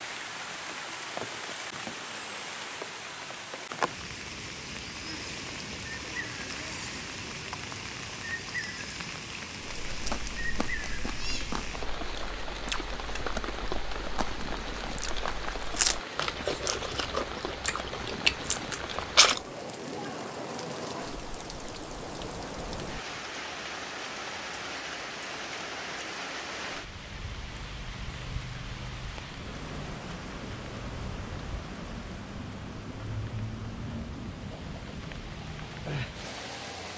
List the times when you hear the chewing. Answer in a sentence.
The chewing can be heard from 9.8 to 19.4 s.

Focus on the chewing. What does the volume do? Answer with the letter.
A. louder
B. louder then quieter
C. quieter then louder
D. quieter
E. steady
A.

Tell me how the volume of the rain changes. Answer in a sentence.
The loudness of the rain stays about the same.